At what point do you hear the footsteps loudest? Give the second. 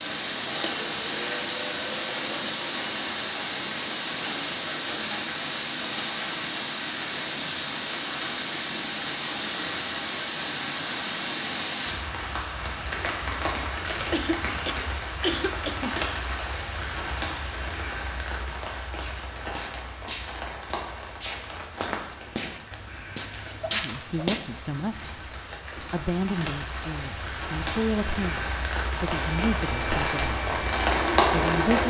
24 s.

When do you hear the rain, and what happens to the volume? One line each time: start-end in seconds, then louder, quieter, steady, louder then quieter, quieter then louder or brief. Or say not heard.
0.0-31.8 quieter then louder.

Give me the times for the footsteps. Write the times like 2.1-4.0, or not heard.
18.9-24.4.